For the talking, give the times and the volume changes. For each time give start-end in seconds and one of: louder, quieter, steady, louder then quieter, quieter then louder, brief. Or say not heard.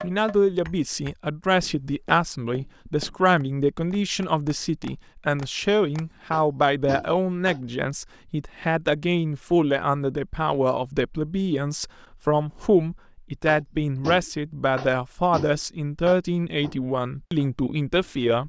0.0-18.4 steady.